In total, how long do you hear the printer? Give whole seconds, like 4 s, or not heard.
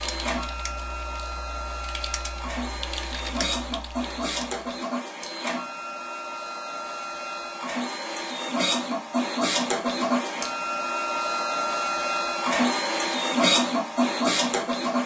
15 s.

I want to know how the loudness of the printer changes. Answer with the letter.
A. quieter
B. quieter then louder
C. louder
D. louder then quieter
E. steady
C.